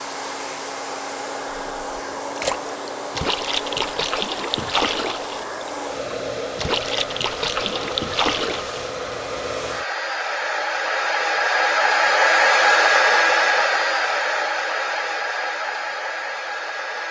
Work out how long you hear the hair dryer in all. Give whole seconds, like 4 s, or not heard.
17 s.